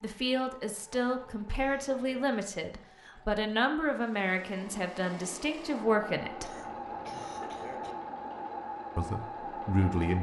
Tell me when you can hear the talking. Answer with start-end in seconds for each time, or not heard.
0.0-6.5, 8.9-10.1.